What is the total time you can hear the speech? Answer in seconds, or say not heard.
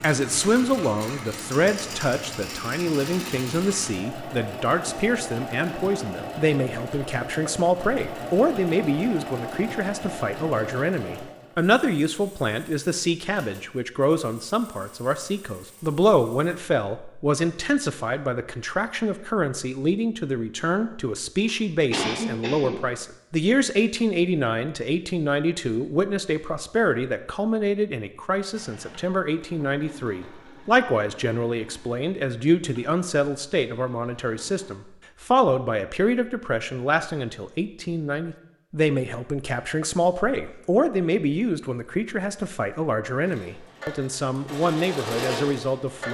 46 s.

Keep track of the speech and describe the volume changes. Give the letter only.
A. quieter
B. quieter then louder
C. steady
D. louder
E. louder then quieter
C.